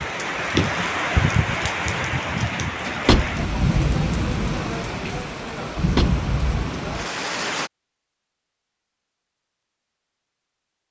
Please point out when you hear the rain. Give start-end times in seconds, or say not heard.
0.0-7.7.